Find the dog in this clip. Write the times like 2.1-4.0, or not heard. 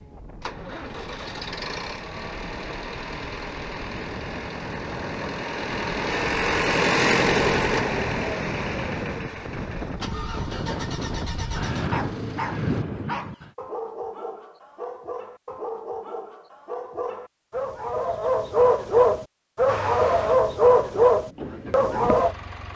11.7-22.4.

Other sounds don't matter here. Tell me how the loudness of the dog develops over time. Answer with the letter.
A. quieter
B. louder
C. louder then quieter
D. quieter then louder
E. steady
B.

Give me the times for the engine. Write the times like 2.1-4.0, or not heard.
0.0-12.8, 19.6-22.7.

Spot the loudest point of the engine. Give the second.
7 s.